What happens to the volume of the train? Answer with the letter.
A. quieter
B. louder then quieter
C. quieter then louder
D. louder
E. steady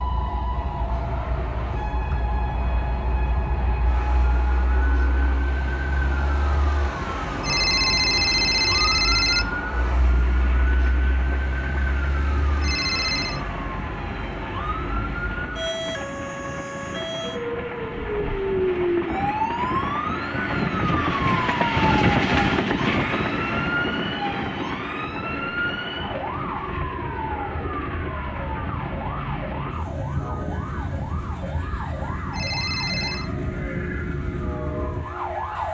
B.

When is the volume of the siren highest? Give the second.
19 s.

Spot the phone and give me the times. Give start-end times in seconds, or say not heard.
7.4-9.4, 12.6-13.4, 32.3-33.3.